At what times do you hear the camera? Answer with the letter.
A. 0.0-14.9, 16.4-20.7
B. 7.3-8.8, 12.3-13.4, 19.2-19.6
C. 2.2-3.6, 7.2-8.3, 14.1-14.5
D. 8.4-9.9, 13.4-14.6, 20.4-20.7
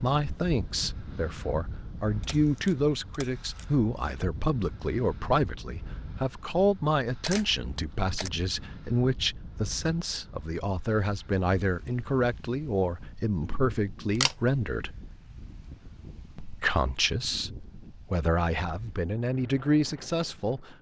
C.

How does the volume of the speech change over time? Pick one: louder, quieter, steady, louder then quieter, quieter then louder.
steady.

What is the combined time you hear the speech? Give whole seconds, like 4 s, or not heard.
19 s.